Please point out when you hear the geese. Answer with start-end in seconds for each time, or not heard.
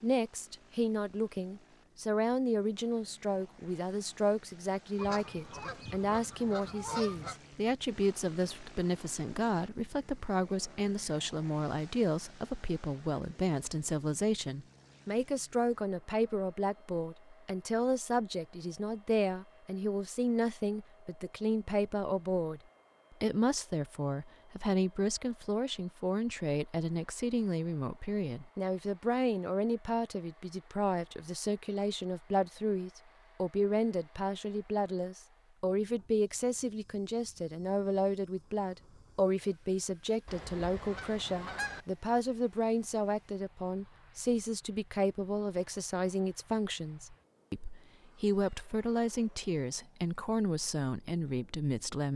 5.0-7.4, 40.2-41.9.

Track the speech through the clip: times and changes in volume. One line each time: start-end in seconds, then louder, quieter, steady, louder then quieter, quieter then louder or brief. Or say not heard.
0.0-22.6 steady
23.2-52.1 steady.